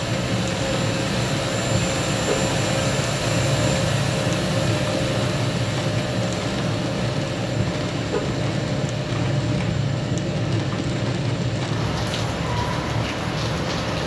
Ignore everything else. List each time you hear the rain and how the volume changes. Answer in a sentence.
You can hear the rain from 0.0 to 14.0 s, at a steady volume.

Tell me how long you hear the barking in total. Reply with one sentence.
You can't hear the barking here.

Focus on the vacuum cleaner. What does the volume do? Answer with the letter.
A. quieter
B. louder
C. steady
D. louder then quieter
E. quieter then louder
A.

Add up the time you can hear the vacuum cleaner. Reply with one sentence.
You can hear the vacuum cleaner for 14 seconds altogether.